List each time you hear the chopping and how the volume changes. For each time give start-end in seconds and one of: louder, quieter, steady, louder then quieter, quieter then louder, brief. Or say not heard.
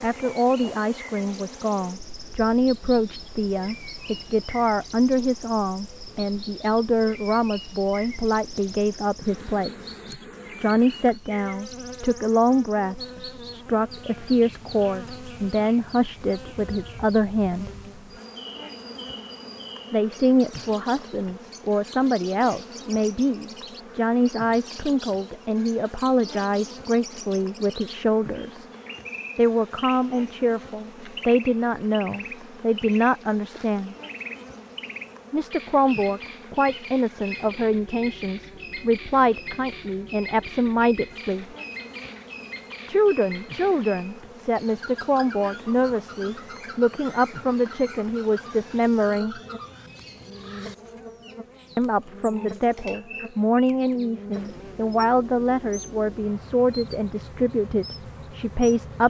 not heard.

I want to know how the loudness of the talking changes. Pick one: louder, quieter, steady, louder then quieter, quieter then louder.
steady.